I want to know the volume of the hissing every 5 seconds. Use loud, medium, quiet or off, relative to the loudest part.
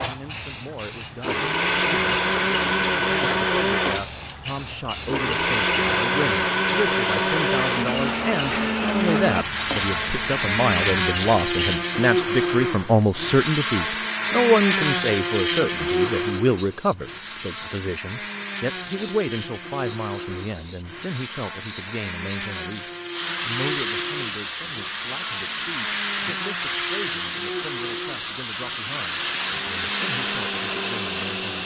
medium, medium, medium, loud, loud, loud, loud.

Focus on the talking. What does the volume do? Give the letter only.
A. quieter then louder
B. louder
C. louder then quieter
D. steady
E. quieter
C.